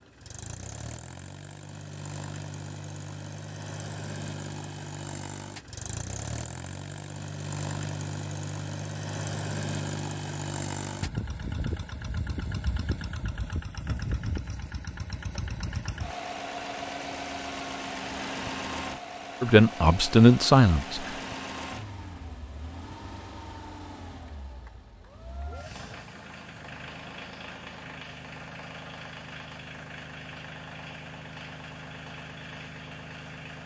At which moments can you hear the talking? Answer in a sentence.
You can hear the talking from 19.4 to 21.1 s.